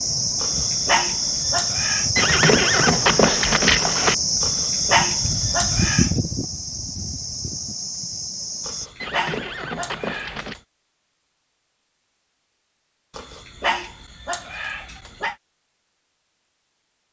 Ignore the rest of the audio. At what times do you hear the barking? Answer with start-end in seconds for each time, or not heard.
0.4-2.1, 4.4-6.1, 8.7-10.6, 13.2-15.3.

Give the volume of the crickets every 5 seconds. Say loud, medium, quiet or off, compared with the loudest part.
loud, loud, off, off.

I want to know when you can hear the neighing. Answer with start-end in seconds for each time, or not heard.
2.1-4.2, 9.0-10.6.